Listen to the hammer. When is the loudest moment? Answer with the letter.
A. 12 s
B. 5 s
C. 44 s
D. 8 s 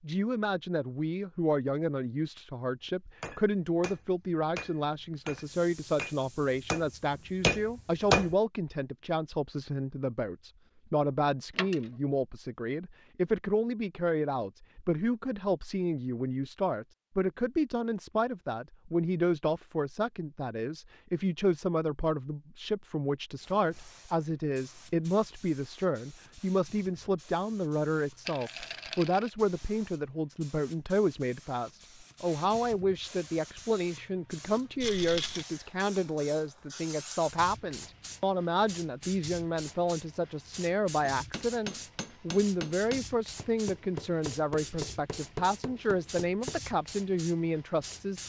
D.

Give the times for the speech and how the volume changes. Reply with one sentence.
The speech can be heard from 0.0 to 48.2 s, at a steady volume.